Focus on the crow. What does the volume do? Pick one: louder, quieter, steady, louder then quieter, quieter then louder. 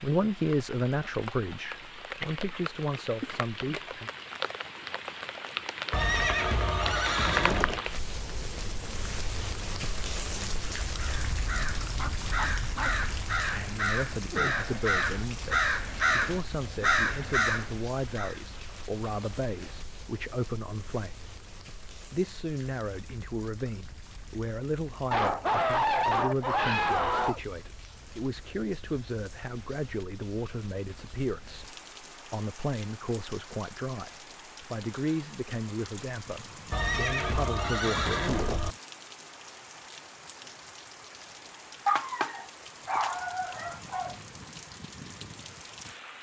louder.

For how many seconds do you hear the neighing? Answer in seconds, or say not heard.
4 s.